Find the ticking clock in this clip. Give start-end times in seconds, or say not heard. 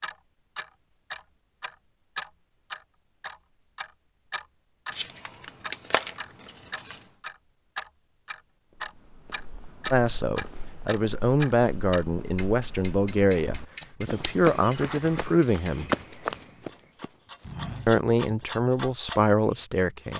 0.0-5.0, 5.6-20.1.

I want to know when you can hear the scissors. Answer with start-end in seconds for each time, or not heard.
4.9-7.0, 13.8-15.2.